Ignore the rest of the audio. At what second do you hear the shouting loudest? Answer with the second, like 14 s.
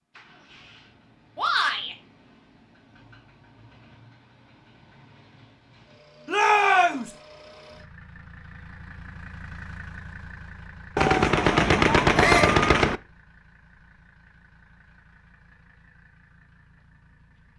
7 s.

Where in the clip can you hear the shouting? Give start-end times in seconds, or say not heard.
1.4-1.9, 6.2-7.0, 12.2-12.6.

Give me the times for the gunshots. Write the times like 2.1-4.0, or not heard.
10.9-13.0.